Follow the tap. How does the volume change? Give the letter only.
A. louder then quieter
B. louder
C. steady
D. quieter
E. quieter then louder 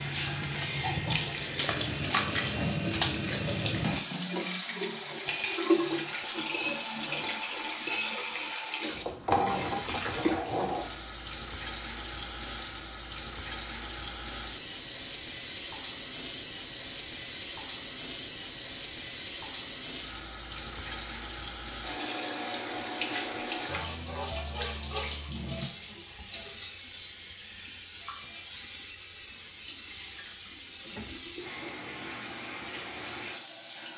D.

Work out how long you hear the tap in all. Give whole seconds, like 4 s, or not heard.
34 s.